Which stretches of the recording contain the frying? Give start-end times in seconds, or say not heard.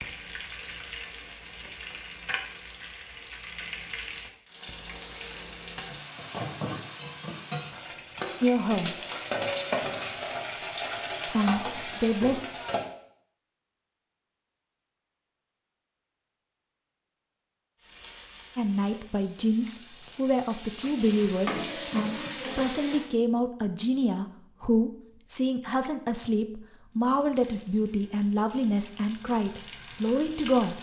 0.0-12.9, 17.8-23.1, 26.9-30.7.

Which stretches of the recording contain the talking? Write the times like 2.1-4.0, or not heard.
8.4-8.9, 11.2-12.4, 18.6-30.7.